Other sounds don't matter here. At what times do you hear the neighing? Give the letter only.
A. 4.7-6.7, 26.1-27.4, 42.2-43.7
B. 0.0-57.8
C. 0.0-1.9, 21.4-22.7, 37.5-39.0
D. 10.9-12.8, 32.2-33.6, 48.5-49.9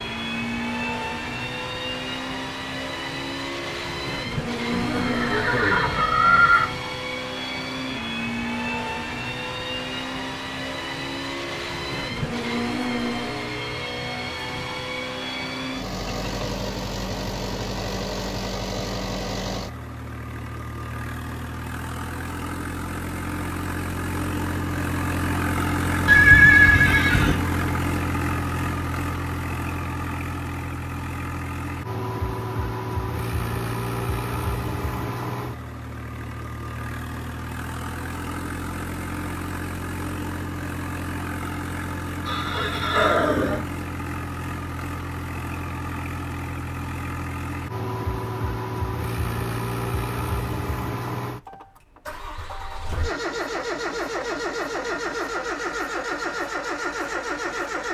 A.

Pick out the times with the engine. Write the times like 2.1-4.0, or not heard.
0.0-57.8.